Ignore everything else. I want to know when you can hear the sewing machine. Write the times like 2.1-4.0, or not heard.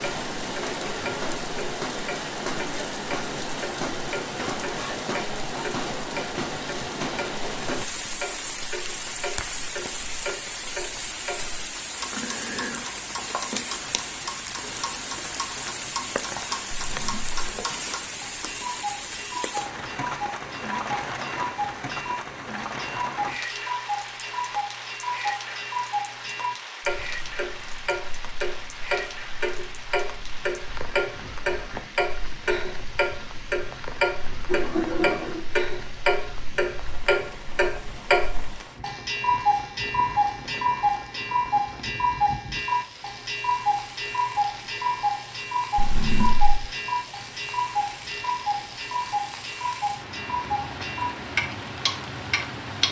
not heard.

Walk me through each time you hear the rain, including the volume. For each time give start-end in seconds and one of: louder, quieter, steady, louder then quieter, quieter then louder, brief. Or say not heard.
0.0-52.8 quieter.